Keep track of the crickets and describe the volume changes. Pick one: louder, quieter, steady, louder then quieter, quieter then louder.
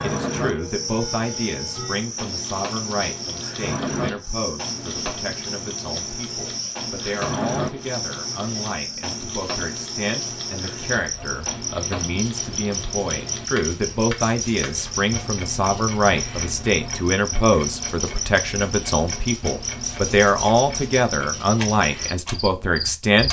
steady.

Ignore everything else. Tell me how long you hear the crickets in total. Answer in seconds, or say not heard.
23 s.